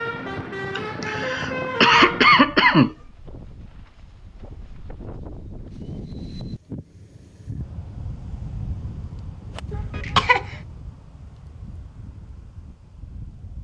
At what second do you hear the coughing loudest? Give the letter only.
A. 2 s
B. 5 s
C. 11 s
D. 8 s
A.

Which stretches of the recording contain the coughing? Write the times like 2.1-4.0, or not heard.
0.8-2.9, 9.7-10.6.